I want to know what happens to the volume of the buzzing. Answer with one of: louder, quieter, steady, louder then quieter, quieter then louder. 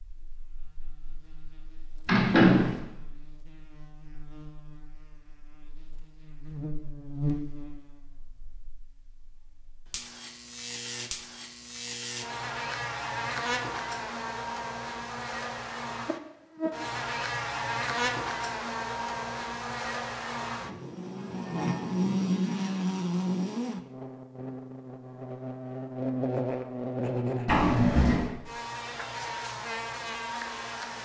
louder.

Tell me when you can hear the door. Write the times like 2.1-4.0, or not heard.
2.0-2.8, 27.4-28.3.